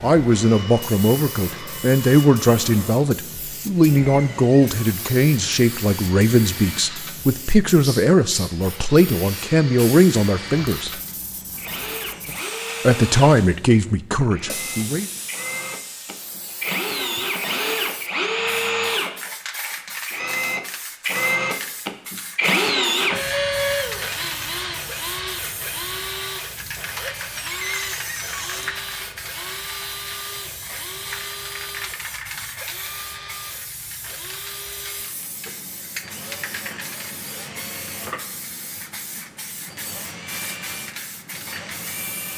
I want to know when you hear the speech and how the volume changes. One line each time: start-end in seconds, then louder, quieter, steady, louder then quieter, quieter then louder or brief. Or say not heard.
0.0-10.9 steady
12.8-15.1 brief.